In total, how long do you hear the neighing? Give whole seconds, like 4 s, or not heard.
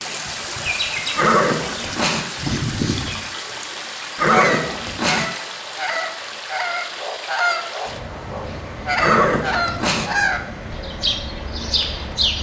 3 s.